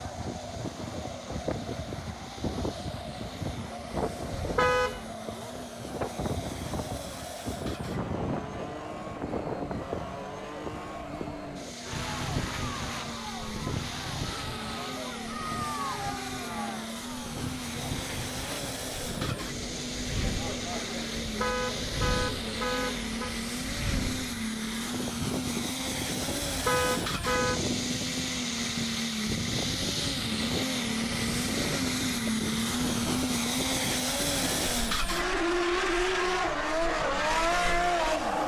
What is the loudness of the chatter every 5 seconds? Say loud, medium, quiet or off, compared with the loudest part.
loud, loud, loud, loud, loud, off, off, off.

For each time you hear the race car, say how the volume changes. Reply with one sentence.
You can hear the race car from 0.0 to 38.4 s, getting louder.